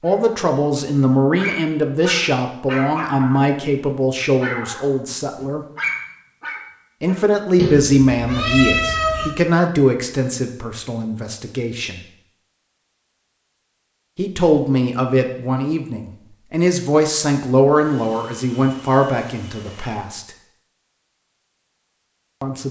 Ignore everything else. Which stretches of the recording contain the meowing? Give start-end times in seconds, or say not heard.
7.5-9.3.